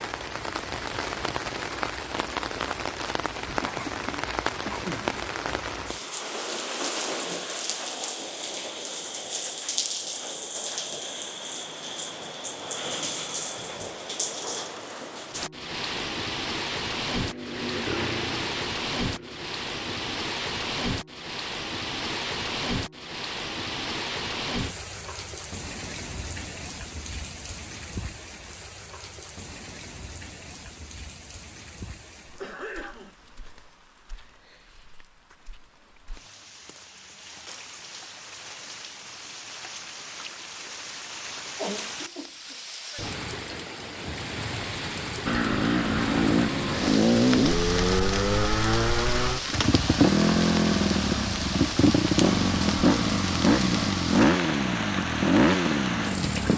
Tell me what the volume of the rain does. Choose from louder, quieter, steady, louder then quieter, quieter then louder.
quieter then louder.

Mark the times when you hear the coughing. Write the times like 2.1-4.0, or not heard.
3.6-5.2, 32.4-33.1, 41.5-42.5.